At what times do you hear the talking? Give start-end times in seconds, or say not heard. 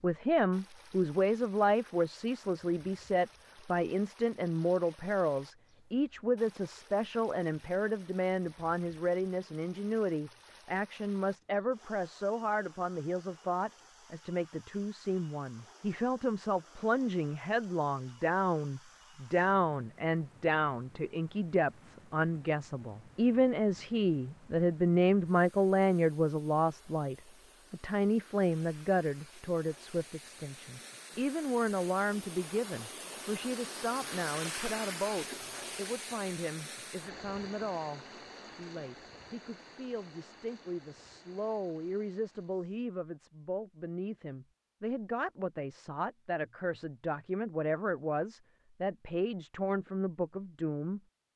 0.0-51.0.